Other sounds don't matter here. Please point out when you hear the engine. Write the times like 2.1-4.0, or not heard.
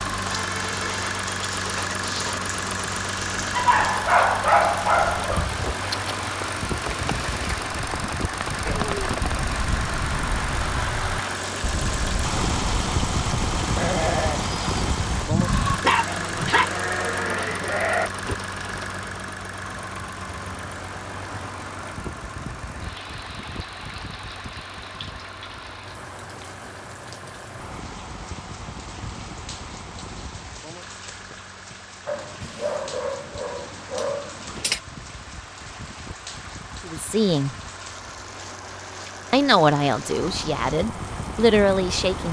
0.0-42.2.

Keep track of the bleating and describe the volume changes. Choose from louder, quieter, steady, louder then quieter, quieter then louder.
louder.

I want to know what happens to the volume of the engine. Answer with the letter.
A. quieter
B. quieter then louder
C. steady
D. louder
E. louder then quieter
A.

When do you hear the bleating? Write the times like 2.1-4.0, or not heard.
8.6-18.4.